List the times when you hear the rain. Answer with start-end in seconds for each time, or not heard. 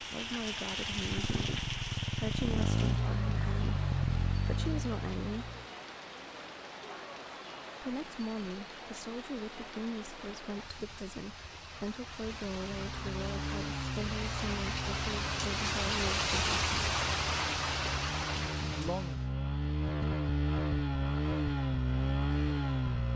0.0-19.3.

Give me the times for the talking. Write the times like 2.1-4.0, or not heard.
0.0-5.5, 7.8-16.9, 18.7-19.2.